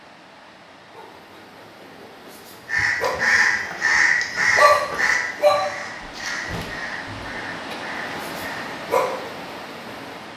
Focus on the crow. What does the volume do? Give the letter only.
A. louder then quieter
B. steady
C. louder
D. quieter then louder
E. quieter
E.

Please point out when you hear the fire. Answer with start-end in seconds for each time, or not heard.
not heard.